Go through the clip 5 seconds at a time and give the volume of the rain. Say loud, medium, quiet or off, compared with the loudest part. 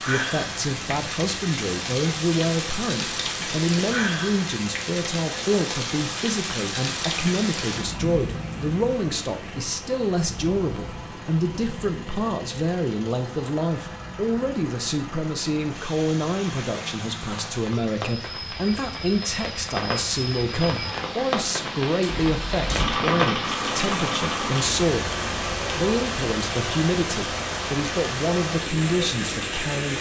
loud, loud, medium, medium, loud, loud.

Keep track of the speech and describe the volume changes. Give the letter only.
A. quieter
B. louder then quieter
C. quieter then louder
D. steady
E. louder
D.